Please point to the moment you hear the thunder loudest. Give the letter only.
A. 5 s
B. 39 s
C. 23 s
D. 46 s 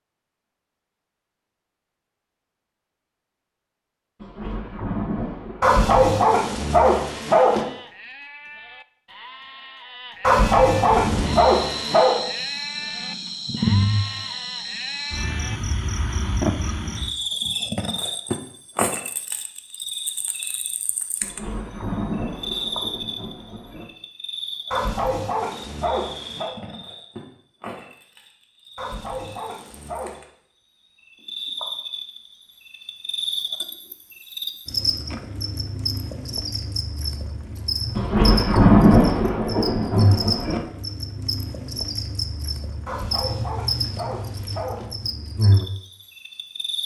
B.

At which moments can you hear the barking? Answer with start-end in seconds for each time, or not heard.
5.6-7.7, 10.2-12.2, 24.7-26.6, 28.8-30.2, 42.9-44.9.